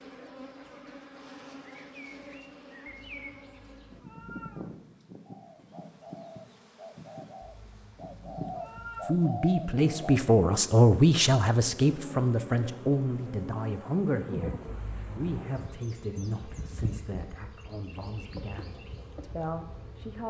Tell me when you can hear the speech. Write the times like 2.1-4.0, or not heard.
9.0-14.6, 15.2-20.2.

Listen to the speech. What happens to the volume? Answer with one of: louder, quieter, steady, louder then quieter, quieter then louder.
quieter.